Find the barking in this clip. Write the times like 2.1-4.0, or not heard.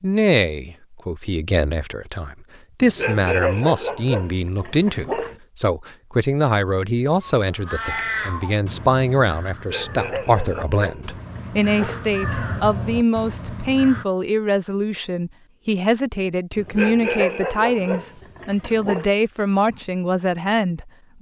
2.8-5.3, 9.5-12.2, 16.6-19.1.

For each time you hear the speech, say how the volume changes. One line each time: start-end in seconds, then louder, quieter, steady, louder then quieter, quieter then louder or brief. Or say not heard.
0.0-21.1 steady.